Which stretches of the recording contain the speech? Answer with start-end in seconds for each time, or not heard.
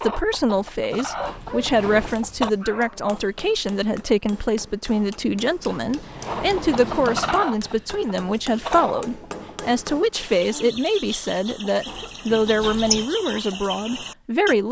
0.0-14.6.